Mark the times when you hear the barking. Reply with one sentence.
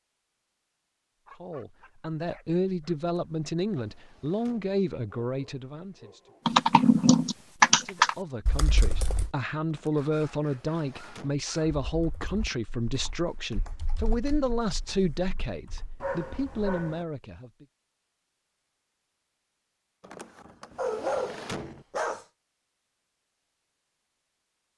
The barking can be heard from 1.2 to 3.0 s, from 5.2 to 6.5 s, from 9.9 to 12.4 s, from 16.0 to 17.1 s and from 20.8 to 22.2 s.